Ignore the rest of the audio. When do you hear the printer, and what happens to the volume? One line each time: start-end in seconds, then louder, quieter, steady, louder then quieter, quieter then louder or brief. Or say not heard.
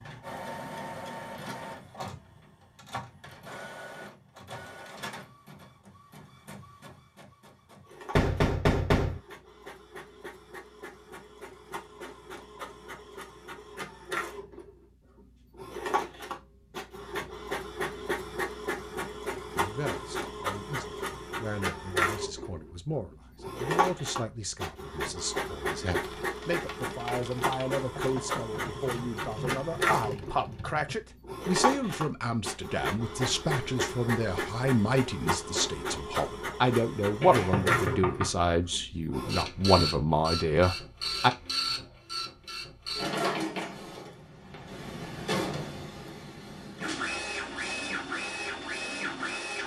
0.0-49.6 louder.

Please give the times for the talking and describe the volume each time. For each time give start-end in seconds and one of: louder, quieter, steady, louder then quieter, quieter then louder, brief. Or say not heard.
19.6-41.3 louder.